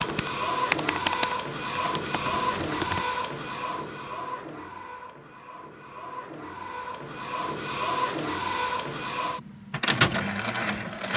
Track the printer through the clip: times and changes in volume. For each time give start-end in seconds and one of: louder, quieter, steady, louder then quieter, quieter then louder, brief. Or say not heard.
0.0-11.1 quieter then louder.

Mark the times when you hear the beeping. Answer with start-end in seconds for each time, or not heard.
3.6-4.7.